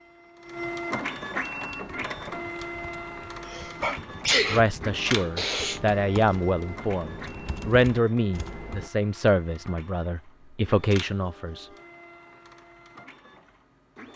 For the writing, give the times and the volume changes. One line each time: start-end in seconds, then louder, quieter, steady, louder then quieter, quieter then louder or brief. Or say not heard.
not heard.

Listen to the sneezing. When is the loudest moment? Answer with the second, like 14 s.
4 s.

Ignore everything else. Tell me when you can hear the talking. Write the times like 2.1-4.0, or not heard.
4.5-11.7.